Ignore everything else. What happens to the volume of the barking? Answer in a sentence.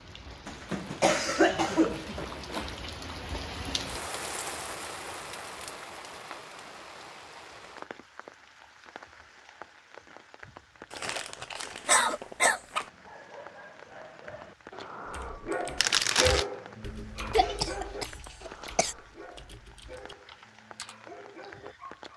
The loudness of the barking goes up, then down.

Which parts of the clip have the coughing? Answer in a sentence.
You can hear the coughing from 0.5 to 2.2 s, from 11.8 to 12.6 s and from 17.3 to 18.9 s.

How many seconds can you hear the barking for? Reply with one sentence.
You can hear the barking for 9 seconds altogether.